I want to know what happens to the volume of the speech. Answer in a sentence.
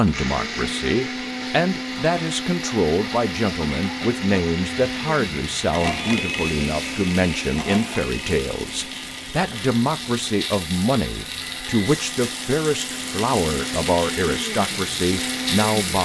The loudness of the speech stays about the same.